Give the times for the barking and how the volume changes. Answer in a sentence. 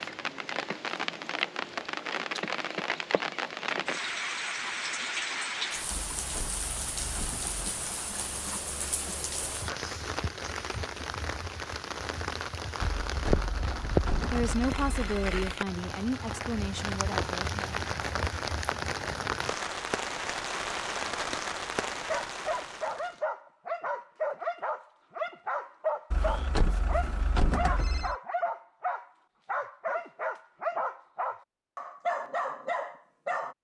The barking can be heard from 21.9 to 33.5 s, at a steady volume.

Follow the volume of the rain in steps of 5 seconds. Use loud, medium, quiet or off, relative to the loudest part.
loud, loud, loud, loud, loud, off, off.